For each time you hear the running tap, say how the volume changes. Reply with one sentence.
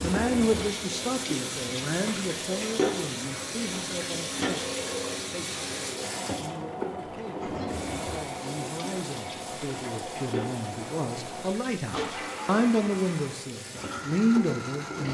You can hear the running tap from 0.0 to 15.0 s, getting quieter.